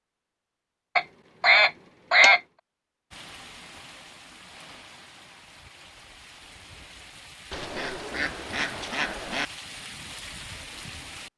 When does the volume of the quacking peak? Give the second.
2 s.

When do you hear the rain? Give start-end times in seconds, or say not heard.
3.1-11.3.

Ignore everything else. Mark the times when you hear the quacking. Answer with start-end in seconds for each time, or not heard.
0.9-2.4, 7.5-9.4.